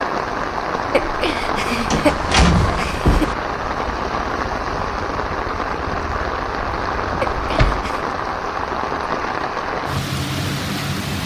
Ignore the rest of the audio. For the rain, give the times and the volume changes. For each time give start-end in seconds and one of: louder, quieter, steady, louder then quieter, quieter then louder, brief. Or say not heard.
0.0-11.2 steady.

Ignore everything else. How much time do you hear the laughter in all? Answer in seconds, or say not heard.
3 s.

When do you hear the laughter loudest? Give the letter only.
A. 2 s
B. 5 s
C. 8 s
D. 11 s
A.